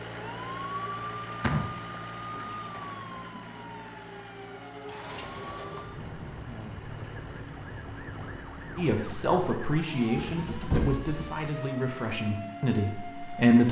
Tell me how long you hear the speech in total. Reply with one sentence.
You can hear the speech for 5 seconds altogether.